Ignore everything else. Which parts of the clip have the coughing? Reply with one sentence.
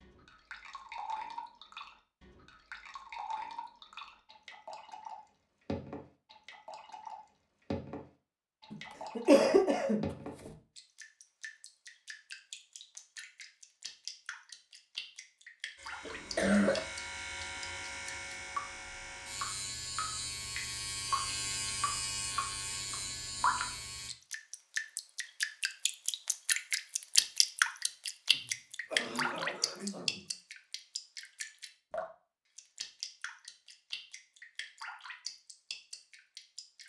The coughing can be heard from 8.7 to 10.5 s, from 16.1 to 16.9 s and from 28.3 to 30.2 s.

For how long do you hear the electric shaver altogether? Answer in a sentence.
You can hear the electric shaver for 8 seconds altogether.